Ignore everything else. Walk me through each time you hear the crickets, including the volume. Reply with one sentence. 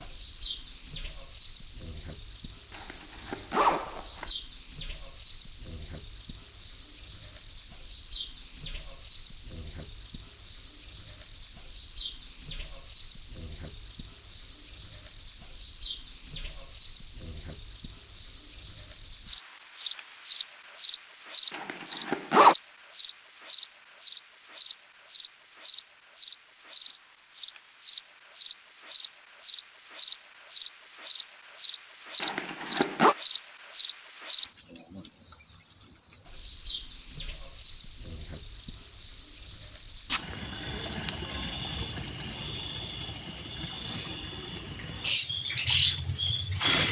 You can hear the crickets from 0.0 to 46.8 s, at a steady volume.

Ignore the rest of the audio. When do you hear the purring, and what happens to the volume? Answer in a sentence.
The purring can't be heard in this clip.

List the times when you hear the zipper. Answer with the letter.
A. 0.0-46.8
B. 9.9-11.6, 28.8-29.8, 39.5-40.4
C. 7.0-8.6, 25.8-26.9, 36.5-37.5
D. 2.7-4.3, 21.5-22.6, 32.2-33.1
D.